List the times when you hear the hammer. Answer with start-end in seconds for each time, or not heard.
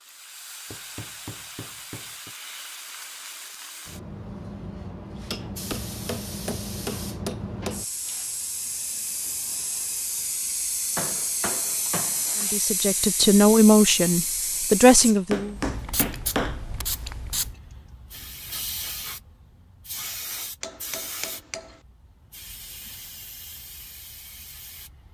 0.7-2.4, 5.3-7.8, 10.9-12.4, 15.2-16.9, 20.6-21.7.